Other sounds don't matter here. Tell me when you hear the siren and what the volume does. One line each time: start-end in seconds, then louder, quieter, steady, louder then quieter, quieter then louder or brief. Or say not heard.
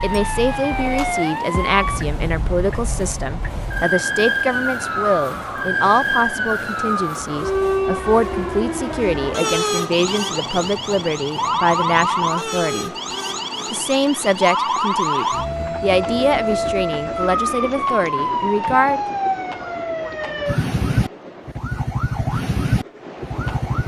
0.0-23.8 steady.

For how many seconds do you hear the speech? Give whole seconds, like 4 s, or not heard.
18 s.